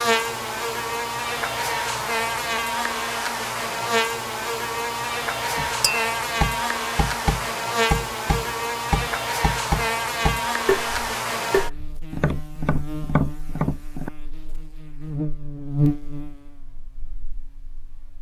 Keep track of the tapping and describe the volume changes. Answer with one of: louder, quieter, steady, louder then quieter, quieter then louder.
steady.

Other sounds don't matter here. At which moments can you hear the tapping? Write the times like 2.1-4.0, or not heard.
5.5-14.1.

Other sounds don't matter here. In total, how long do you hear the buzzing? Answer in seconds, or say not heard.
18 s.